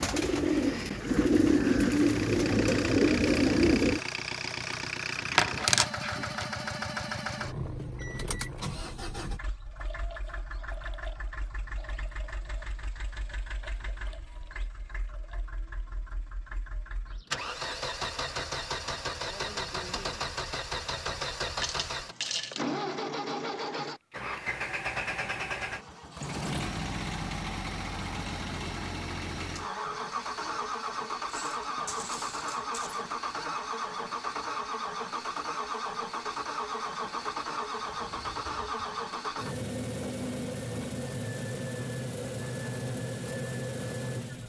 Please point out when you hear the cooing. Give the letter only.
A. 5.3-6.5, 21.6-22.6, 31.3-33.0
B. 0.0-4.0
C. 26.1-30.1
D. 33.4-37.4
B.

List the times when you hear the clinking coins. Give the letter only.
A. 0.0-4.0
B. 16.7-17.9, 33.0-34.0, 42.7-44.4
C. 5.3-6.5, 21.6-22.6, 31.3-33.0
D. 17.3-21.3
C.